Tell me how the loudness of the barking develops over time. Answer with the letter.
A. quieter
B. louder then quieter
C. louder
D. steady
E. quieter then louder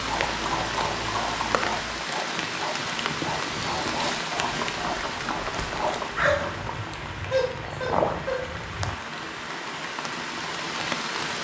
C.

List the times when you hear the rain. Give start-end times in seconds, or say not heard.
0.0-11.3.